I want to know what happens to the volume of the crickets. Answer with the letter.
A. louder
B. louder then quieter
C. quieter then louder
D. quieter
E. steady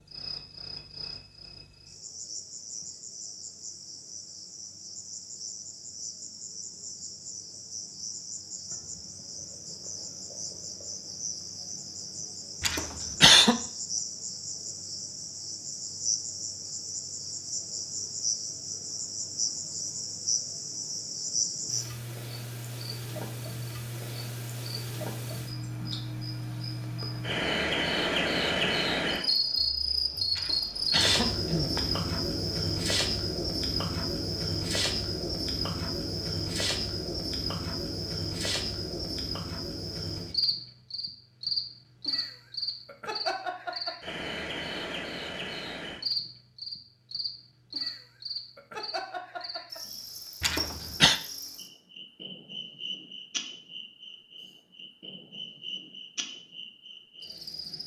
B.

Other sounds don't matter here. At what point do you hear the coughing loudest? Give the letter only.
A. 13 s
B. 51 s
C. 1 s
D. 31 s
A.